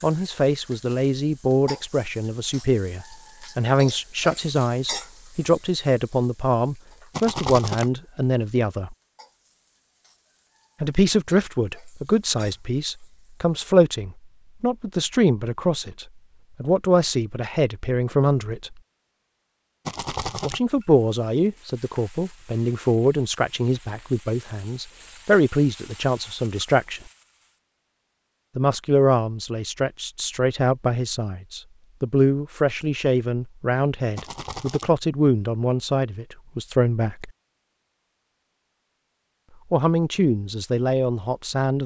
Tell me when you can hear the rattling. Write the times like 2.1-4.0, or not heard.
7.1-7.9, 19.9-20.6, 34.1-34.9.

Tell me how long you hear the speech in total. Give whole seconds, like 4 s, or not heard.
34 s.